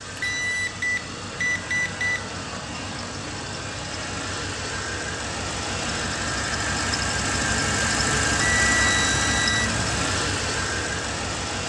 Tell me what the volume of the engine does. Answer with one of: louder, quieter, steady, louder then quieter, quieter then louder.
louder.